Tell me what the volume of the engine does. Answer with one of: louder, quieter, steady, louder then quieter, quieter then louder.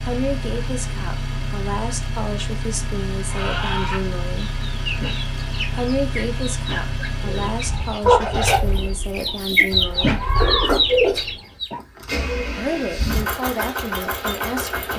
quieter then louder.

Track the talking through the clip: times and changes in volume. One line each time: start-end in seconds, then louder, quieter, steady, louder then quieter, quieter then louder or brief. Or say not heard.
0.0-4.5 steady
5.8-10.2 steady
12.6-14.9 brief.